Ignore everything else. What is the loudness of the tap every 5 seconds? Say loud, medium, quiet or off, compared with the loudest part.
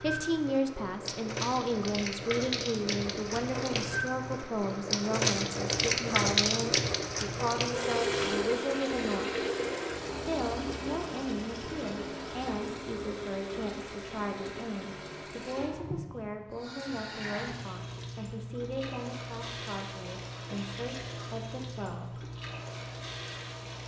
medium, loud, medium, medium, medium.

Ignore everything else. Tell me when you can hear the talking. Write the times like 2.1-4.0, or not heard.
0.0-9.3, 10.1-22.2.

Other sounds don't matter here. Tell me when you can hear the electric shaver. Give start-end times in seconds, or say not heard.
not heard.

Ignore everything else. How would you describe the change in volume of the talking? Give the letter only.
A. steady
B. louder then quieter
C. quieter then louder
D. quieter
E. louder
D.